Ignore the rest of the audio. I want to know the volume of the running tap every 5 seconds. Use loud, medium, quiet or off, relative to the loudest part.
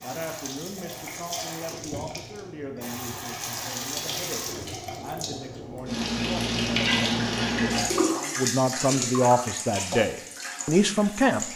medium, loud, medium.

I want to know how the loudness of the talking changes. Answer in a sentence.
The loudness of the talking goes up.